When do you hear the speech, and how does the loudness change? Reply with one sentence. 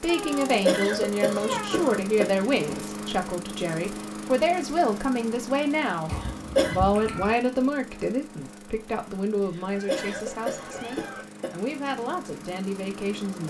The speech can be heard from 0.0 to 13.4 s, getting quieter.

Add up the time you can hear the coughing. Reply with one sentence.
The coughing can be heard for 5 seconds in total.